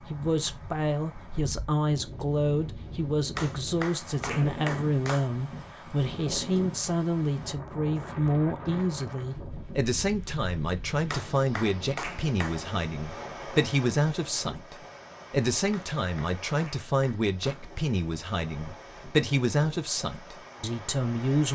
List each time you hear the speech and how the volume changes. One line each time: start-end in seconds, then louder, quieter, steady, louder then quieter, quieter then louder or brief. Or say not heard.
0.1-21.5 steady.